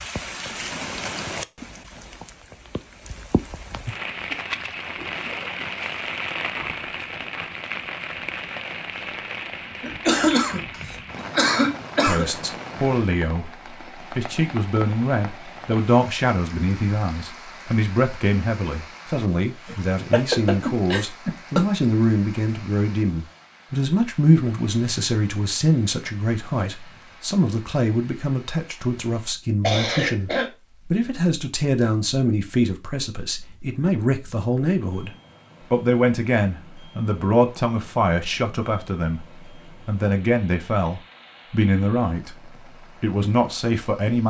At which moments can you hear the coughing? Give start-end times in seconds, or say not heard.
9.8-12.2, 19.6-21.6, 29.6-30.5.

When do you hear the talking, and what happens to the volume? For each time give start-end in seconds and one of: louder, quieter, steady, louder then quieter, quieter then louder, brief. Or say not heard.
12.1-13.5 brief
14.1-35.1 steady
35.7-44.2 steady.